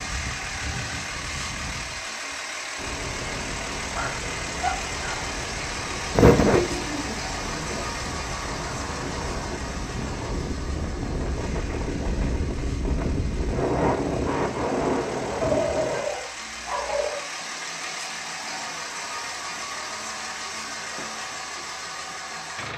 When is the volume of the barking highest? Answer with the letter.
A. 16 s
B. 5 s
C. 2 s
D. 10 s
A.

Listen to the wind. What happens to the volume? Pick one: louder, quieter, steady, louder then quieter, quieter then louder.
louder.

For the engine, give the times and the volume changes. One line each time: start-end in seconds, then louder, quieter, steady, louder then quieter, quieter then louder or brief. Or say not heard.
0.0-22.7 quieter then louder.